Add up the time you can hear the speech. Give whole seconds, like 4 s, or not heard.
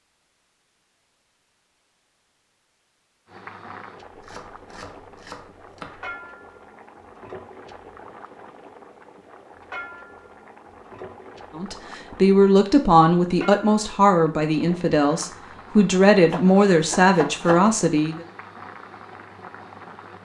7 s.